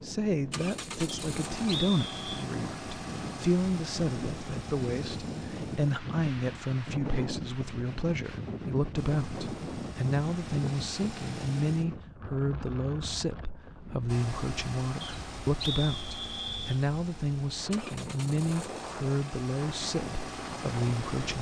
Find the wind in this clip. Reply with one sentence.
The wind can be heard from 0.0 to 21.3 s.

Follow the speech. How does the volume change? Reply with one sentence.
The volume of the speech stays about the same.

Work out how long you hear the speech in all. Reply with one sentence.
The speech can be heard for 21 seconds in total.